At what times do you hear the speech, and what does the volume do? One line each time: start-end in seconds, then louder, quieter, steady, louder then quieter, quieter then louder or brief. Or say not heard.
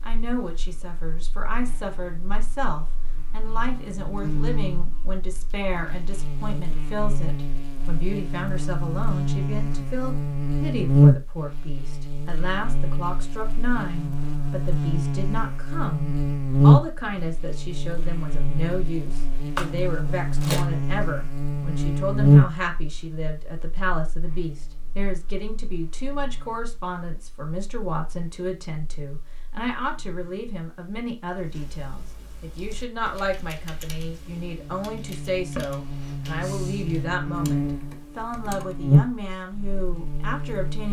0.0-40.8 steady.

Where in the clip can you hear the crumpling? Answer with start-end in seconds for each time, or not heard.
19.6-20.6.